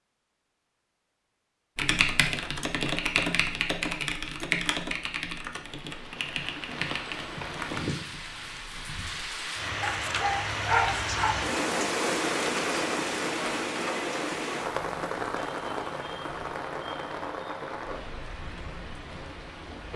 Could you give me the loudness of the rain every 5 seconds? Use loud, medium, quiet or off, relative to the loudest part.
off, medium, loud, medium.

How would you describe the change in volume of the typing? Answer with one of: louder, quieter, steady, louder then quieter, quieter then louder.
quieter.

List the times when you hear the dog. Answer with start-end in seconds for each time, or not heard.
9.8-11.4.